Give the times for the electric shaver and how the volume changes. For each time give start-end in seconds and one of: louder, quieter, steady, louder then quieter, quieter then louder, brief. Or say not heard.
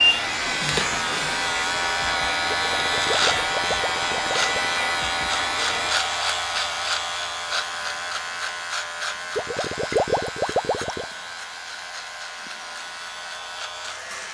0.0-14.3 quieter.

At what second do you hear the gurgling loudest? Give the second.
10 s.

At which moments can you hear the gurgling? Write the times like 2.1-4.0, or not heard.
2.5-4.7, 9.3-11.1.